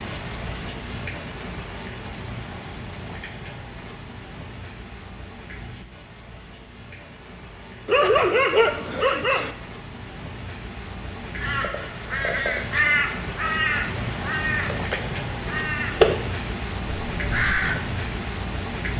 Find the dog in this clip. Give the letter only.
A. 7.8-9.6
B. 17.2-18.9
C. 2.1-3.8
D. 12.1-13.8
A.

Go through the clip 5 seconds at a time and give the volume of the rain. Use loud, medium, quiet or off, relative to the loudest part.
medium, medium, loud, loud.